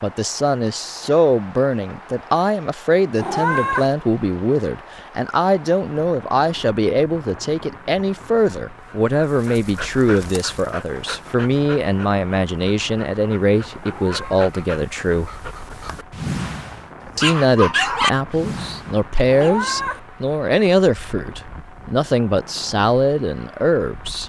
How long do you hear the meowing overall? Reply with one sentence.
The meowing can be heard for 2 seconds in total.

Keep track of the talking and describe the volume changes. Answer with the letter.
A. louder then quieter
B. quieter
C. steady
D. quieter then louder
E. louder
C.